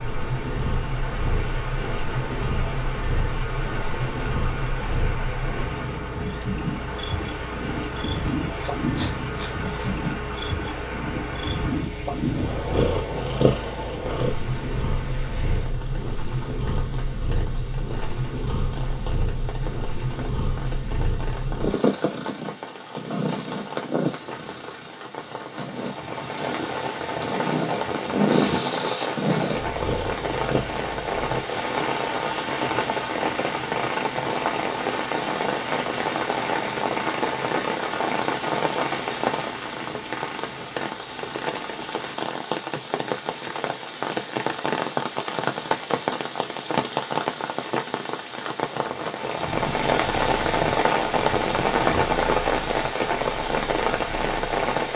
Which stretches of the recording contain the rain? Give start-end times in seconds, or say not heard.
0.0-54.9.